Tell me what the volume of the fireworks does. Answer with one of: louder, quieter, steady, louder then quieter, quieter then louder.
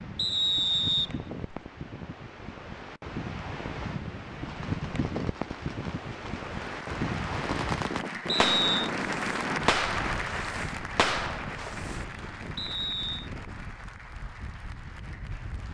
louder.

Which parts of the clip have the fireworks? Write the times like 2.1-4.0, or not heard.
4.5-12.1.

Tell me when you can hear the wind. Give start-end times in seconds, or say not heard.
0.0-15.7.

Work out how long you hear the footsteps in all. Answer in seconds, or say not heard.
not heard.